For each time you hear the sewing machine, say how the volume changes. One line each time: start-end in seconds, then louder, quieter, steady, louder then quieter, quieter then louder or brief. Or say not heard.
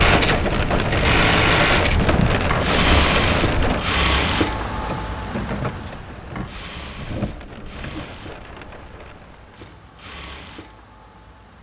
0.0-11.5 quieter.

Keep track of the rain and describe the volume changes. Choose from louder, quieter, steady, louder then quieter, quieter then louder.
quieter.